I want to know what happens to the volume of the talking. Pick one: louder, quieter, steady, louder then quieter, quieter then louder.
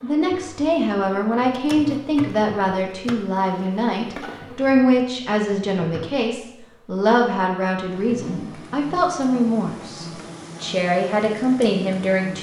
steady.